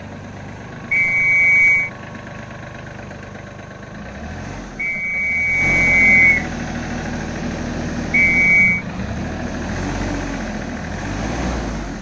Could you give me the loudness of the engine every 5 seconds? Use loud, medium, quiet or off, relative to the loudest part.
medium, loud, loud.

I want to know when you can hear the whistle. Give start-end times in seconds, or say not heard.
0.9-1.9, 4.8-6.5, 8.1-8.8.